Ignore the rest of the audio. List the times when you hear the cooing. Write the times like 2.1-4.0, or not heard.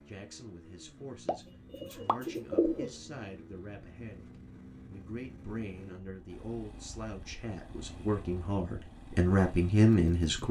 1.2-2.9.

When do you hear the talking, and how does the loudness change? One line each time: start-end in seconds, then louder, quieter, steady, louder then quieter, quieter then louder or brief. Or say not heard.
0.1-10.4 louder.